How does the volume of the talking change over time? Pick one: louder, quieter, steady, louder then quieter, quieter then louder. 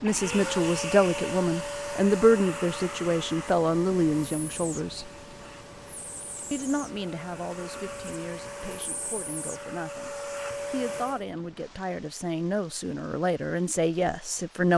quieter then louder.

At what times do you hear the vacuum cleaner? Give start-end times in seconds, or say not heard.
0.0-11.2.